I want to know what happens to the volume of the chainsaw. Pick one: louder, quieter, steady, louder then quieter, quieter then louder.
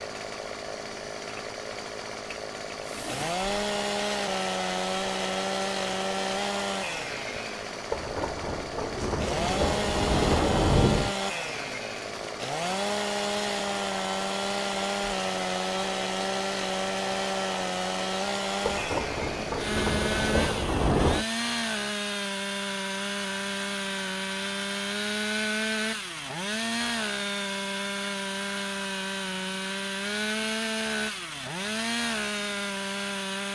steady.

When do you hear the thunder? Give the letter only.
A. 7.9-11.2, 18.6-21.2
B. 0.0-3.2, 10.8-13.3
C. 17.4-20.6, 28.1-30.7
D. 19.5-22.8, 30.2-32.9
A.